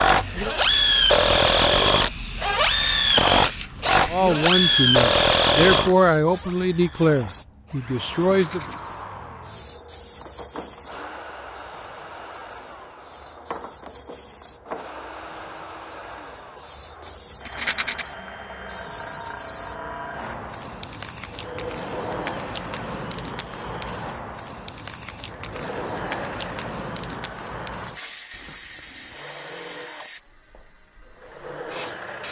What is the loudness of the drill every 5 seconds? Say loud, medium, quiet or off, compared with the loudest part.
loud, medium, quiet, quiet, quiet, quiet, quiet.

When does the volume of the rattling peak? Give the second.
18 s.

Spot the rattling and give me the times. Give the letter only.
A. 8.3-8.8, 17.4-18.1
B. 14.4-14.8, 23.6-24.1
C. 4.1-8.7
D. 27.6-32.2
A.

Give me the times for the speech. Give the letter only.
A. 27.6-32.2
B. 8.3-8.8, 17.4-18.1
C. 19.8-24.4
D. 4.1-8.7
D.